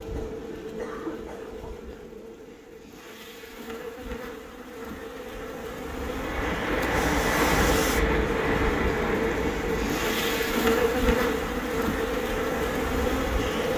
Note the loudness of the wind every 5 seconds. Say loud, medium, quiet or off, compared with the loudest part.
off, loud, medium.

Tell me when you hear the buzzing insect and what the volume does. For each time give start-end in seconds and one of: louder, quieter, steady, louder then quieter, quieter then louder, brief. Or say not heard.
0.0-13.7 louder.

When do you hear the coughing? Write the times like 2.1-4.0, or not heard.
0.1-1.8.